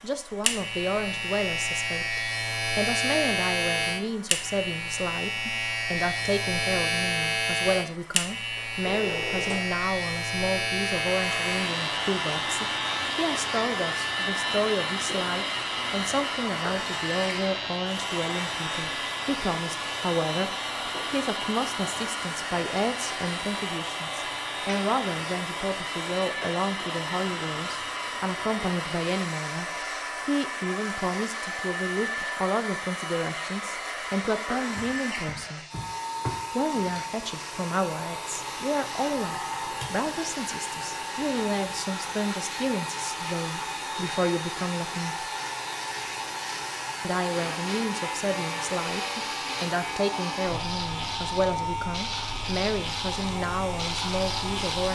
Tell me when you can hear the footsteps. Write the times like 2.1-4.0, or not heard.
not heard.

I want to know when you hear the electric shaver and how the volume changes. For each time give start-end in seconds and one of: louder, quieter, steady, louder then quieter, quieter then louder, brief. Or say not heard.
0.2-54.9 quieter then louder.